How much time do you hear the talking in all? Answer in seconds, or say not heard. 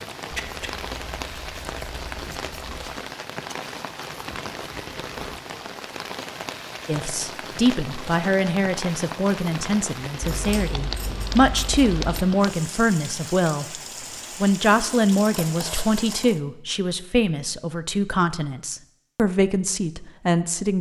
13 s.